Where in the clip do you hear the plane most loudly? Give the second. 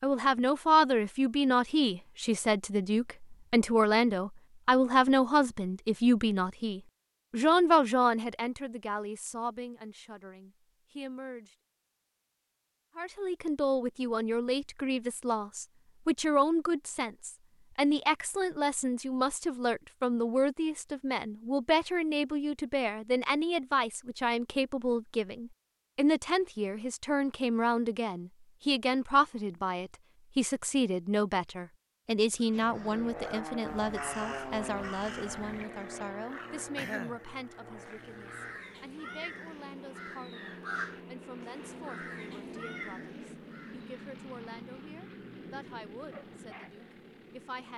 34 s.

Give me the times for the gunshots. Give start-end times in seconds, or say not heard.
not heard.